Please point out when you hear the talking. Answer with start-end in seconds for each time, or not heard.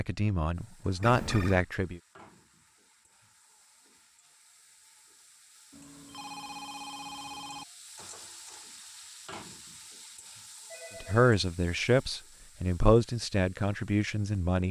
0.0-2.0, 11.0-14.6.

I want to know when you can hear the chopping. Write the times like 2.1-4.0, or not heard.
not heard.